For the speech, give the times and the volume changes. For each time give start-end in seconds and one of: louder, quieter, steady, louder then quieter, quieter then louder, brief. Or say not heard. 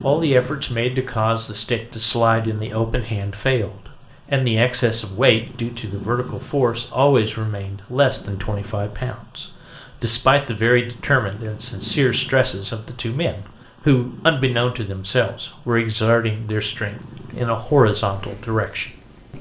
0.0-19.3 steady.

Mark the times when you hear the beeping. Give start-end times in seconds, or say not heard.
not heard.